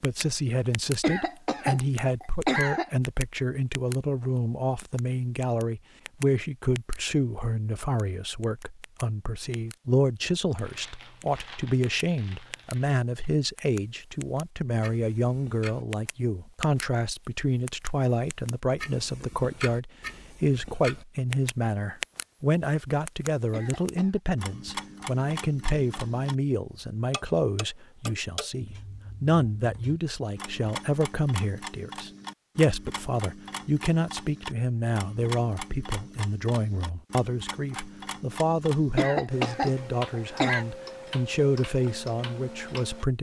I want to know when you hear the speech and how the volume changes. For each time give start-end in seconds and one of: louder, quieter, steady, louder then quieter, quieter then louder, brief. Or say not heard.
0.0-43.1 steady.